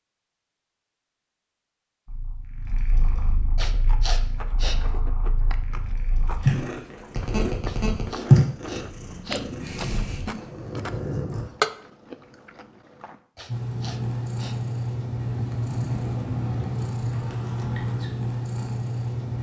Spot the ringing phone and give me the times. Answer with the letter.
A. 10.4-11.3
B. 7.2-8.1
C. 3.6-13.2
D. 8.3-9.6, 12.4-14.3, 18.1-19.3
B.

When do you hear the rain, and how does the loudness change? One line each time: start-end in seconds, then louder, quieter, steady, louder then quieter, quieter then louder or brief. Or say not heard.
not heard.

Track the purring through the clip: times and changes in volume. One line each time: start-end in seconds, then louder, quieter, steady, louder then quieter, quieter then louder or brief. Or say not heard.
2.0-11.4 louder then quieter
13.4-19.3 steady.